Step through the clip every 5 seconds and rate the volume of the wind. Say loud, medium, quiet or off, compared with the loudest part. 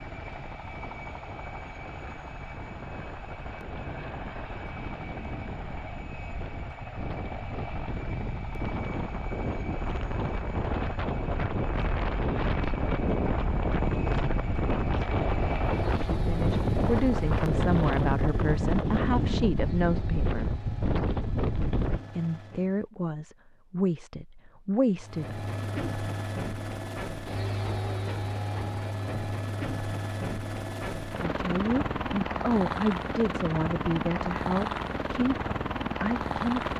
quiet, medium, loud, loud, loud, off, off, off.